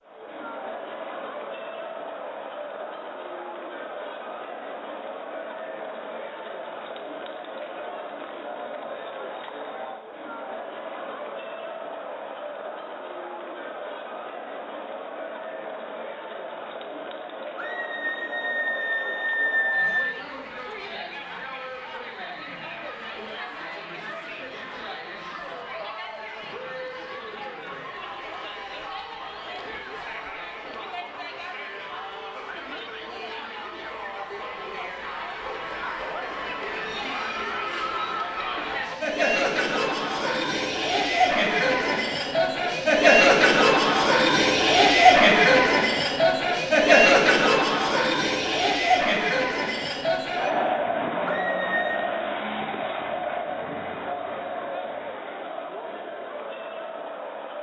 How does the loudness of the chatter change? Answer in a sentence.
The loudness of the chatter goes up.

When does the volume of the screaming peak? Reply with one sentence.
The loudest moment of the screaming is at 20 seconds.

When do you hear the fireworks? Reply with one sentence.
The fireworks can't be heard in this clip.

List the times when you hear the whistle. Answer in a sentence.
The whistle can't be heard in this clip.